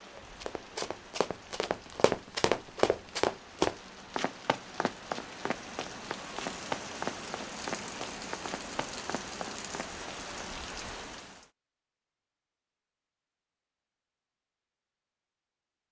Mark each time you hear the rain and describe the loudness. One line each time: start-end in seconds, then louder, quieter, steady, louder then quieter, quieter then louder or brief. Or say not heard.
0.0-11.5 louder.